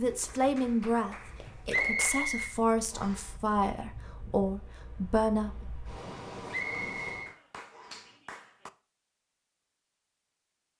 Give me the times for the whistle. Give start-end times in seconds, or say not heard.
1.7-3.3, 6.5-8.1.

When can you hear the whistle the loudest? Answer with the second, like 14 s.
2 s.